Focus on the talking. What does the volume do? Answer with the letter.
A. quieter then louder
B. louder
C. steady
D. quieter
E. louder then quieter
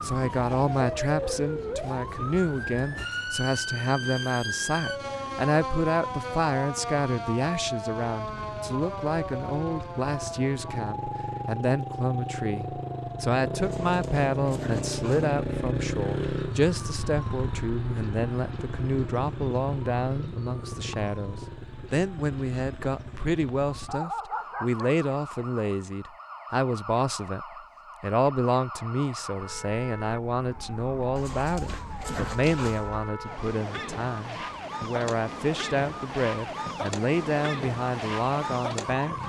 C.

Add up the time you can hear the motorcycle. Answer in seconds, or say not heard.
24 s.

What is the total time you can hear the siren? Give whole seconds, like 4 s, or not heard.
39 s.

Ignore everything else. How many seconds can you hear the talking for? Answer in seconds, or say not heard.
39 s.